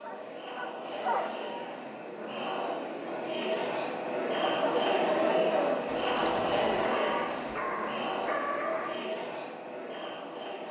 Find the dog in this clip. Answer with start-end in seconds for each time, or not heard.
0.0-1.7, 4.3-9.2.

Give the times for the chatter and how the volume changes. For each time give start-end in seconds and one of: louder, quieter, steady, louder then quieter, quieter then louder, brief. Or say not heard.
0.0-10.6 louder then quieter.